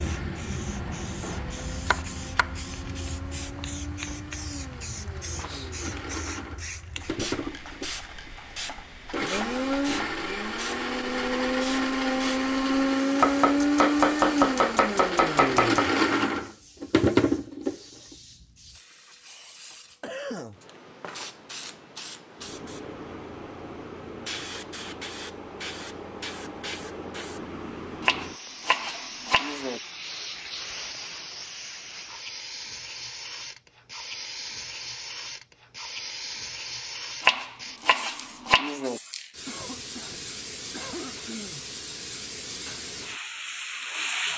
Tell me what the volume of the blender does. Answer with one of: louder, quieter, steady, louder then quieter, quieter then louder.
louder.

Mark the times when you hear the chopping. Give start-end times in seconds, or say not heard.
1.2-3.0, 13.2-15.9, 28.1-29.8, 37.2-39.0.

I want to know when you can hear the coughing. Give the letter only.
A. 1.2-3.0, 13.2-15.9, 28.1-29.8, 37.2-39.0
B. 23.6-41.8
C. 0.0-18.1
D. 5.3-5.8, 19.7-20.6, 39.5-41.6
D.